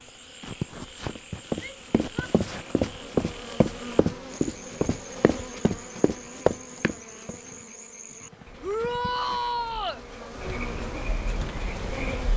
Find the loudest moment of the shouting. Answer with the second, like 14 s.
9 s.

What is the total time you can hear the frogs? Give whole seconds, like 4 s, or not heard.
12 s.